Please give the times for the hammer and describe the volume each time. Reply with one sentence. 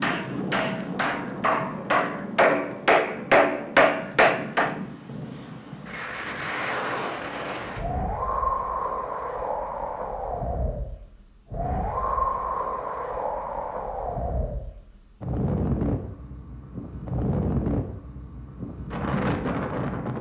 The hammer can be heard from 0.0 to 4.8 s, getting louder.